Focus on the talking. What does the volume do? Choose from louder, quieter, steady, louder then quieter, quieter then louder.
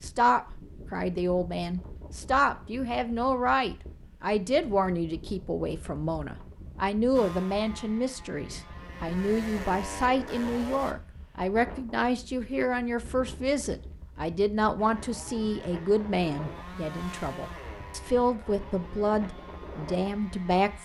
steady.